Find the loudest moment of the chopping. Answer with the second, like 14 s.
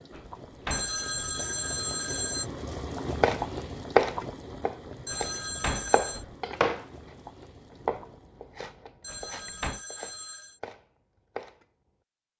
4 s.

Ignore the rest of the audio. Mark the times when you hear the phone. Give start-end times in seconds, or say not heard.
0.7-2.5, 5.0-6.2, 9.0-10.6.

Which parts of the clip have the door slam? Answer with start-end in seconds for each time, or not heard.
0.1-1.4, 5.1-6.3, 9.1-9.8.